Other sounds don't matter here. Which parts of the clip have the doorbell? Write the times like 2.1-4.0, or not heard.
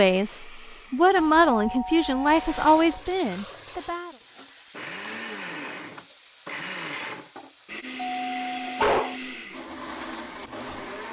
1.1-3.0, 8.2-9.2.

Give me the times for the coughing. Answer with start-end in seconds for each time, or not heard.
not heard.